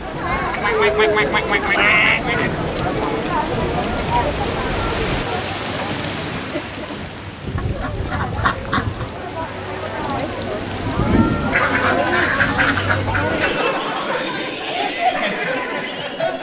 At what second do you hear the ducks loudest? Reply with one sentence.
The volume of the ducks peaks at 2 seconds.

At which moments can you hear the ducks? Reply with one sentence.
The ducks can be heard from 0.5 to 2.5 s, from 7.5 to 9.2 s and from 11.5 to 13.2 s.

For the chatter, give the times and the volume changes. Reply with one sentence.
The chatter can be heard from 0.0 to 16.3 s, getting quieter then louder.